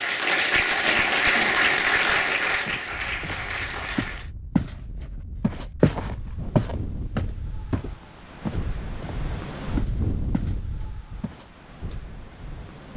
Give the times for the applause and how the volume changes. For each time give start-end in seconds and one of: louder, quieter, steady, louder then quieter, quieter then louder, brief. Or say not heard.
0.0-4.3 quieter.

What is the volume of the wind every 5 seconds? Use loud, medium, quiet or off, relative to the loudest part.
medium, loud, loud.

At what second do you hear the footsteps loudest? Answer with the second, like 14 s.
6 s.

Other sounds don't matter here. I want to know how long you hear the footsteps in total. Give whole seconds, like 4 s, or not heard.
8 s.